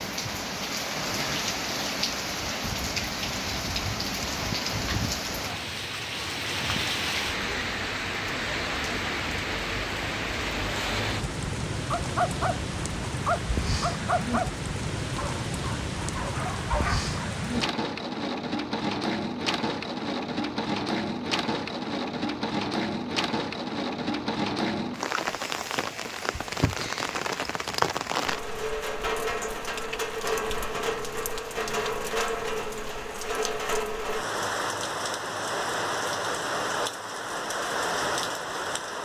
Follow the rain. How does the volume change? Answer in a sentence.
The volume of the rain stays about the same.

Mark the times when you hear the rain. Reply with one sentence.
The rain can be heard from 0.0 to 39.0 s.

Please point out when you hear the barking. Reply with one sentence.
You can hear the barking from 11.9 to 12.6 s, from 13.2 to 14.5 s and from 15.2 to 17.1 s.